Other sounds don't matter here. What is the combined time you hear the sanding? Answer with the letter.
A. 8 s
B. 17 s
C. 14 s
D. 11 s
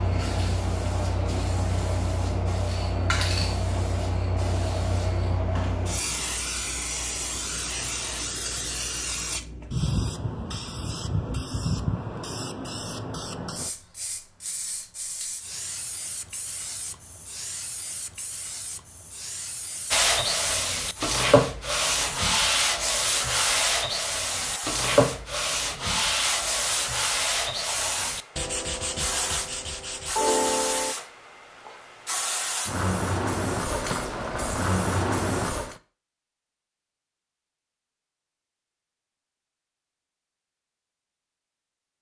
D.